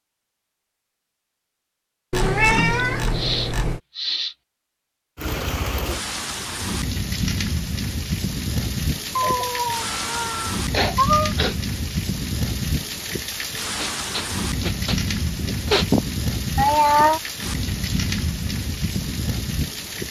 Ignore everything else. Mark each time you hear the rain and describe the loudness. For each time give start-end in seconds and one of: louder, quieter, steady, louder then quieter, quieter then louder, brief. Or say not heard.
5.2-20.0 steady.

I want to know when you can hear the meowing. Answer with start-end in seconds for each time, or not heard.
2.1-3.8, 9.2-11.3, 16.6-17.2.